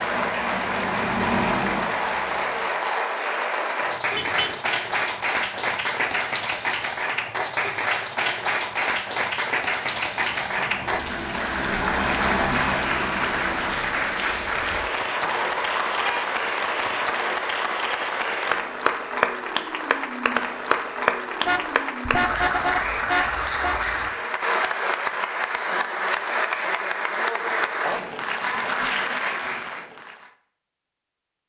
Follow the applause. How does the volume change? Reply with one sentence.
The volume of the applause stays about the same.